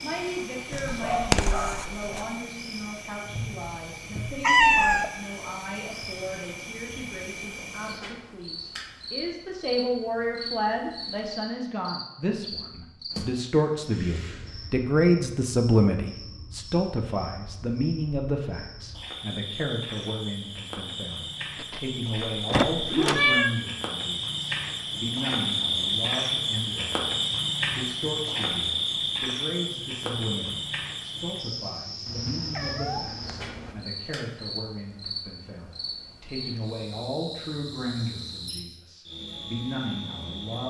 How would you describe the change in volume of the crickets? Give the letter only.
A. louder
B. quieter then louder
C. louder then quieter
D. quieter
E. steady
C.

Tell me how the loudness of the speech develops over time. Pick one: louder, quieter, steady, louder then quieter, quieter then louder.
louder then quieter.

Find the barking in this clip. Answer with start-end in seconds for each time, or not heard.
0.7-2.2.